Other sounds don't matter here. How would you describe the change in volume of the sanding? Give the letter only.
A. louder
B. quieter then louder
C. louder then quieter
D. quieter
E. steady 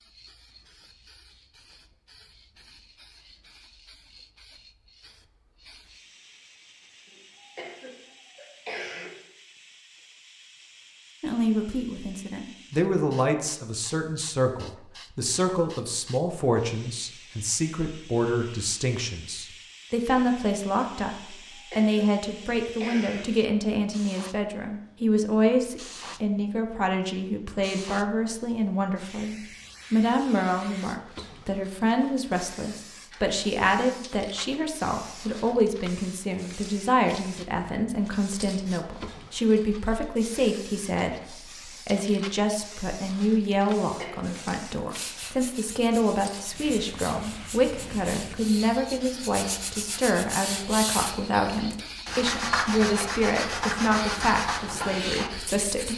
A.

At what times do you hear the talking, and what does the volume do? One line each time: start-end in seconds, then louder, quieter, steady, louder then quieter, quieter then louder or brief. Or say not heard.
11.2-55.9 steady.